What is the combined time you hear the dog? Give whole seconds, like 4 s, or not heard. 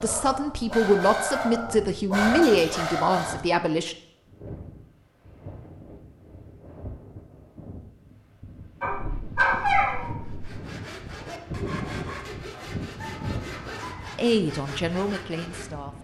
9 s.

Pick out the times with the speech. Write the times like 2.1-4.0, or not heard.
0.0-4.0, 14.2-16.0.